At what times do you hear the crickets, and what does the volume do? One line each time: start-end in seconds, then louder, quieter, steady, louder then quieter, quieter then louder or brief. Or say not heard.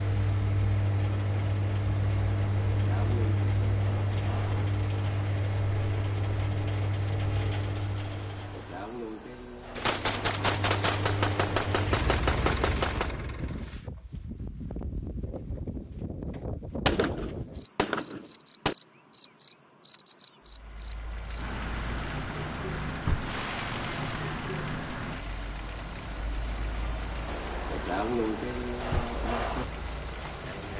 0.0-30.7 louder.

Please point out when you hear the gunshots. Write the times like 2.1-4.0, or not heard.
9.8-13.2, 16.9-18.8.